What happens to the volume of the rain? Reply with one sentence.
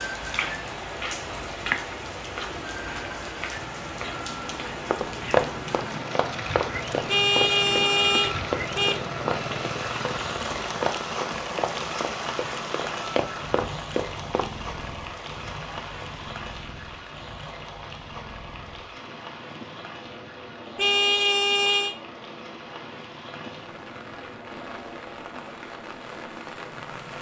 The loudness of the rain goes down.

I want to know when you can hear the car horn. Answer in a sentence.
You can hear the car horn from 7.0 to 9.0 s and from 20.8 to 21.9 s.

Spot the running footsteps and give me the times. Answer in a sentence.
You can hear the running footsteps from 4.9 to 14.5 s.